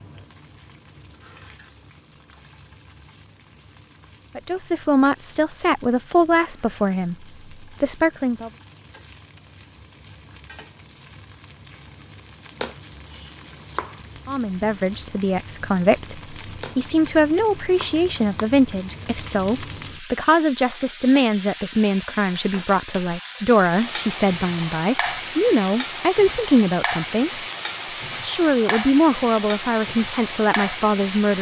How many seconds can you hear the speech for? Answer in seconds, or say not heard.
20 s.